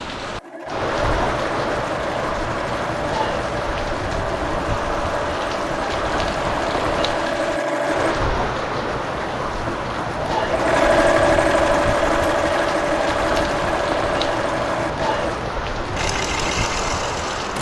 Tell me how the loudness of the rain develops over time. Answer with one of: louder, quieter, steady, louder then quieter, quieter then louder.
steady.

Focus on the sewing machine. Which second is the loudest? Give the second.
11 s.